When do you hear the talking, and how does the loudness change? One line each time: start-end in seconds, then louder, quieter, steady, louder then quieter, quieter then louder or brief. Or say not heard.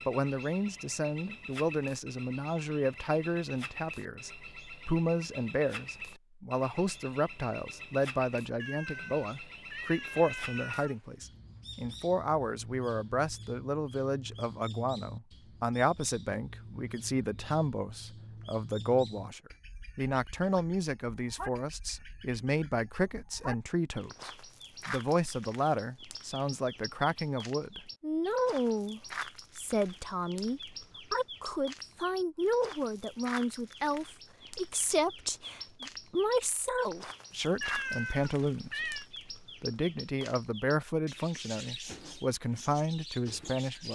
0.1-43.9 steady.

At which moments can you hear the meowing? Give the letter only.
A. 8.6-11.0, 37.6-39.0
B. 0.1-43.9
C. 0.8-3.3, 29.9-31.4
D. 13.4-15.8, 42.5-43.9
A.